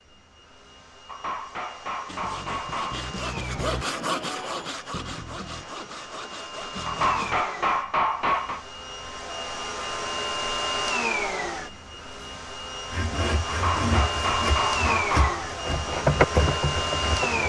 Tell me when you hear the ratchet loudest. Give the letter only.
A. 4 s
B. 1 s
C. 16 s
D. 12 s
C.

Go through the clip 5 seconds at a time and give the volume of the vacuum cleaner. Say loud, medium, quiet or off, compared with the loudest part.
quiet, medium, loud, loud.